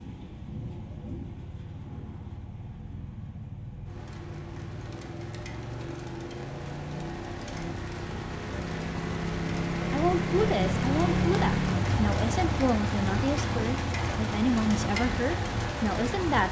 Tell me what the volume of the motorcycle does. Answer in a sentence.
The volume of the motorcycle goes up, then down.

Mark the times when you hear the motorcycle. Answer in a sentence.
The motorcycle can be heard from 0.2 to 16.4 s.